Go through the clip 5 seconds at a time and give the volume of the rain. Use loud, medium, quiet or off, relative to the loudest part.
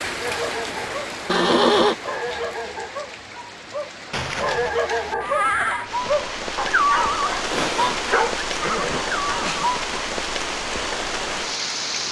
medium, loud, loud.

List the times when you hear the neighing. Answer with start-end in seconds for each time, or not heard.
1.2-1.9, 4.1-5.8, 8.6-9.7.